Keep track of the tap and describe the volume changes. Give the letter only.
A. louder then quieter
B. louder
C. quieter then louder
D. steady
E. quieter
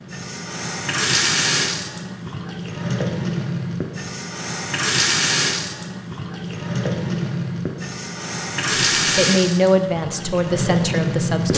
D.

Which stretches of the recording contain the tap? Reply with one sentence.
You can hear the tap from 0.0 to 11.5 s.